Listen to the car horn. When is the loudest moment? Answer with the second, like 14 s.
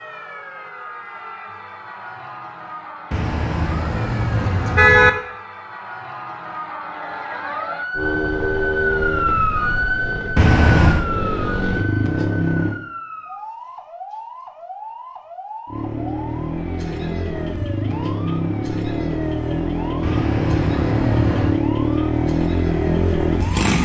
5 s.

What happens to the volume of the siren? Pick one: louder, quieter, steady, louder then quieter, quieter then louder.
louder then quieter.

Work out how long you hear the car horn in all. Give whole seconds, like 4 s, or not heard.
4 s.